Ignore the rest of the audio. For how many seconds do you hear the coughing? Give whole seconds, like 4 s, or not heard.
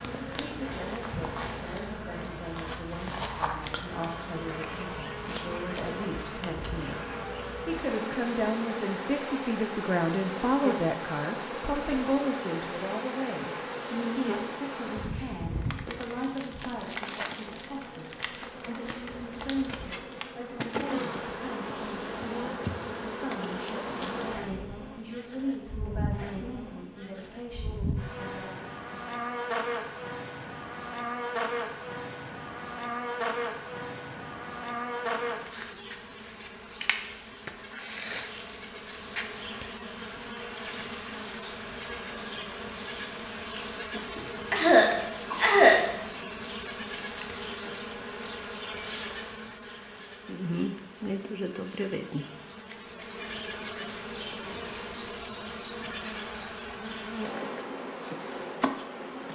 2 s.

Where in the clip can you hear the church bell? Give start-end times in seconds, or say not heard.
not heard.